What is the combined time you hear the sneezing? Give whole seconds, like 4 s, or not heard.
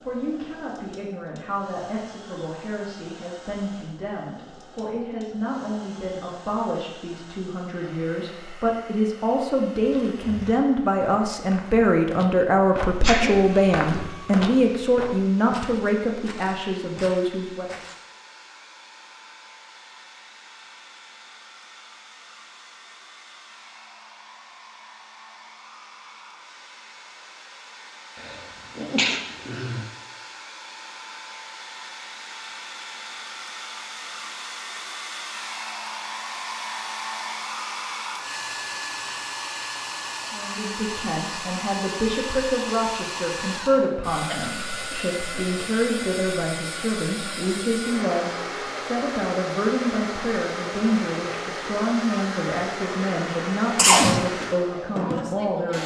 3 s.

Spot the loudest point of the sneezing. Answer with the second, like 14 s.
54 s.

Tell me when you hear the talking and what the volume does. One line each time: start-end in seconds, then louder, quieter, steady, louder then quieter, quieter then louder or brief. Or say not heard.
0.0-17.8 louder
40.3-55.8 steady.